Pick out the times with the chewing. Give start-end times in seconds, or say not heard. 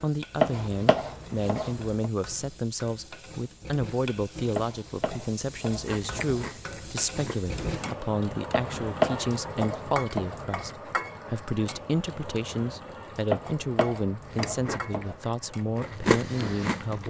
5.8-8.0, 14.2-17.0.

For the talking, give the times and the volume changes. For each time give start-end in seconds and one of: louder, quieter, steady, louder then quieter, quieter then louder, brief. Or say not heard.
0.0-17.0 steady.